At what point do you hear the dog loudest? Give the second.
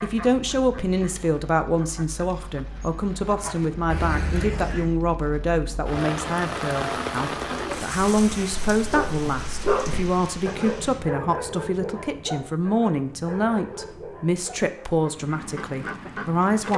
10 s.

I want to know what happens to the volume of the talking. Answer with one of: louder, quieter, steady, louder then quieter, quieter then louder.
steady.